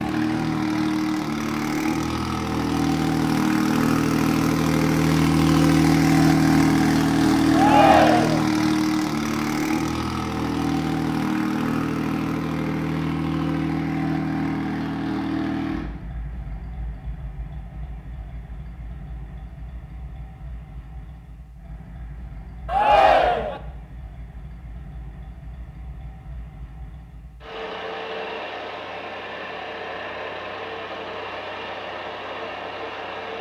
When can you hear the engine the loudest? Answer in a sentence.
The loudest moment of the engine is at 6 seconds.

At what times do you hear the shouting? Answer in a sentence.
The shouting can be heard from 7.5 to 8.4 s and from 22.6 to 23.6 s.